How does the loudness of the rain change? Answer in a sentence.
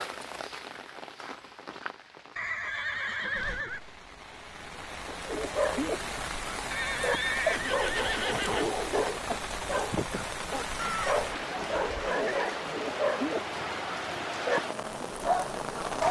The volume of the rain goes up.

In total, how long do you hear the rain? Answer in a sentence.
The rain can be heard for 16 seconds in total.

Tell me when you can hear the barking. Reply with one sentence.
The barking can be heard from 5.0 to 16.0 s.